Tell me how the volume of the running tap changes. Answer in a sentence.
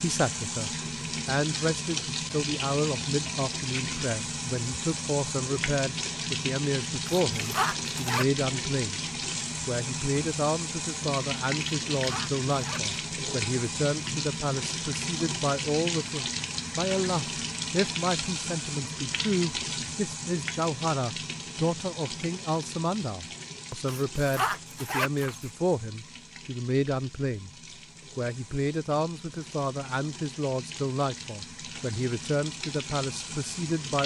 The volume of the running tap goes down.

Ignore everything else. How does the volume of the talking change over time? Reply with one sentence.
The loudness of the talking stays about the same.